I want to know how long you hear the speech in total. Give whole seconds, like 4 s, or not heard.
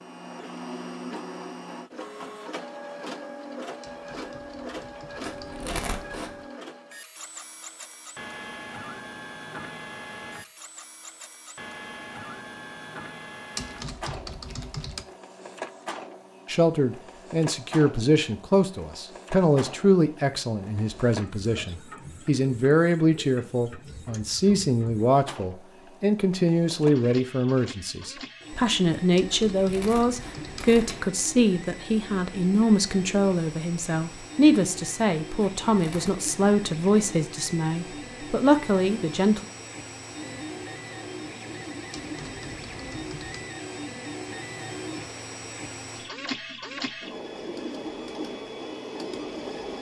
23 s.